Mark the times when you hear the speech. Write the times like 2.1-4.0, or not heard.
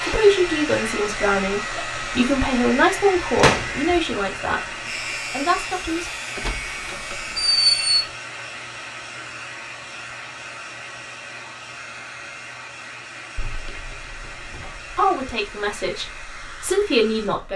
0.1-6.1, 14.9-17.5.